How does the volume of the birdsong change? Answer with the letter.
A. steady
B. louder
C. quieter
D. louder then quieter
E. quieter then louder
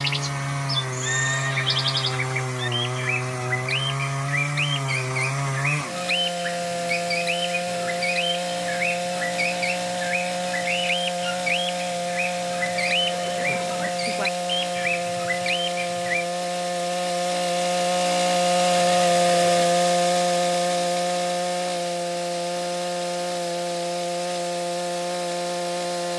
A.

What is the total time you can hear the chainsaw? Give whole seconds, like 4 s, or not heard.
26 s.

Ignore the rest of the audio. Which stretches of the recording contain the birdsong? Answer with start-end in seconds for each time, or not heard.
0.0-16.2.